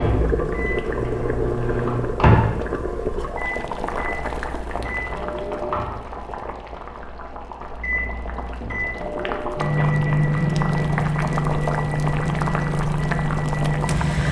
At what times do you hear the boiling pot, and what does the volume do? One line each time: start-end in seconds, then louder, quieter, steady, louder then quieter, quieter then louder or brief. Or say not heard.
0.0-14.2 quieter then louder.